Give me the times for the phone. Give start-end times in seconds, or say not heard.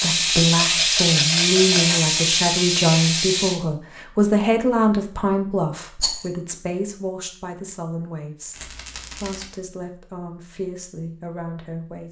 not heard.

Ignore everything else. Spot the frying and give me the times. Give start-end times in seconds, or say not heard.
0.0-3.5.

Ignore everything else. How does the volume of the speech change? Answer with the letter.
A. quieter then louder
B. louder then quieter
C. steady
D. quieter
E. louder
D.